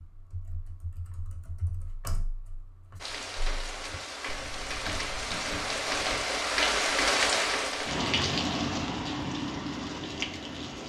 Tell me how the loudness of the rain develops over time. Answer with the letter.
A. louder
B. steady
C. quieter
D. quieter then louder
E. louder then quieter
E.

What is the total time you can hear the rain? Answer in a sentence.
The rain can be heard for 8 seconds in total.